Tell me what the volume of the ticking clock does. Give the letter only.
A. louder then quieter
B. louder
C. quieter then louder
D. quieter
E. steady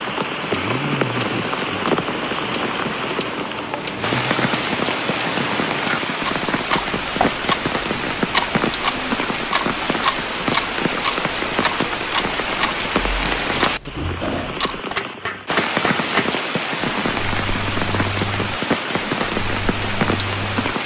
D.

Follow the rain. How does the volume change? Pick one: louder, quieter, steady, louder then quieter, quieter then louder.
steady.